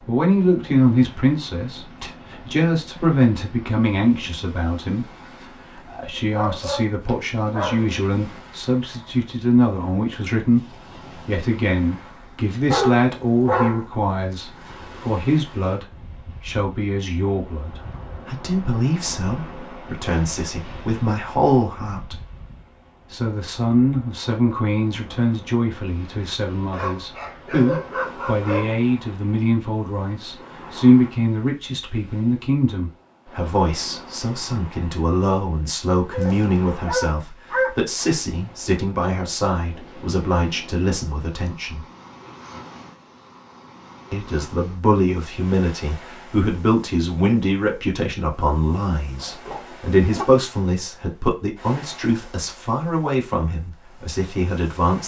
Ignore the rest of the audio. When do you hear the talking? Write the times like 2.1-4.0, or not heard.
0.1-5.0, 5.8-10.6, 11.2-22.2, 23.1-41.9, 44.1-55.0.